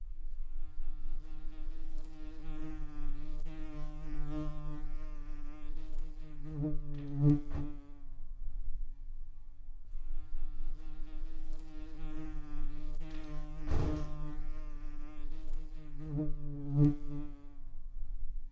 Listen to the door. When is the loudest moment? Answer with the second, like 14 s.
14 s.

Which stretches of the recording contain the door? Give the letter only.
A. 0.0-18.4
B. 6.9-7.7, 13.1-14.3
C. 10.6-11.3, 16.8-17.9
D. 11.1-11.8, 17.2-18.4
B.